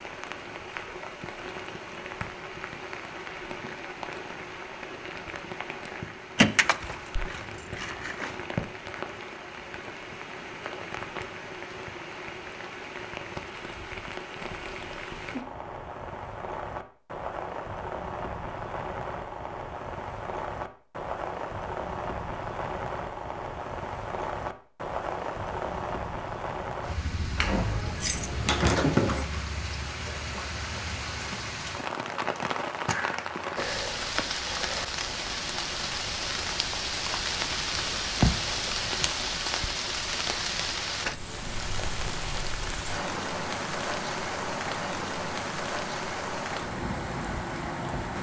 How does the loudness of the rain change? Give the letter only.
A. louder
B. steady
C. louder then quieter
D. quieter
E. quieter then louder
A.